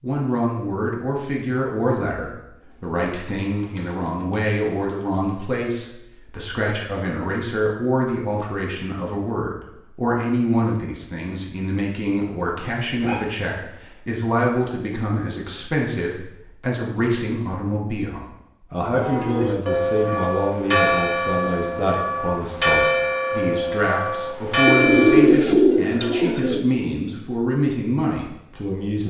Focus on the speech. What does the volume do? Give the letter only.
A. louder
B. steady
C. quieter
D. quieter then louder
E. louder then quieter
B.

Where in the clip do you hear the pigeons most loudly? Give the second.
25 s.